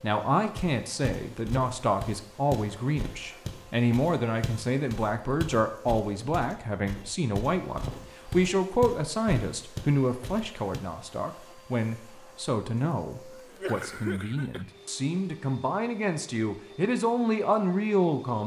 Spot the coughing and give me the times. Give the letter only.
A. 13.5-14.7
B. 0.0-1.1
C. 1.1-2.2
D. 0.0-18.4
A.